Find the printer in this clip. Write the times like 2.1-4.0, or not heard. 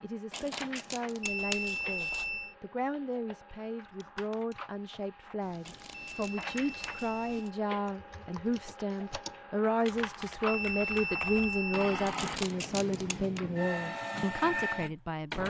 0.0-15.4.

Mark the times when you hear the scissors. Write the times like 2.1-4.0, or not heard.
0.3-2.3, 5.6-7.5, 12.2-13.4.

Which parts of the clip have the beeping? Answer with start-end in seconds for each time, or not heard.
1.2-2.5, 6.0-7.5, 10.4-11.9.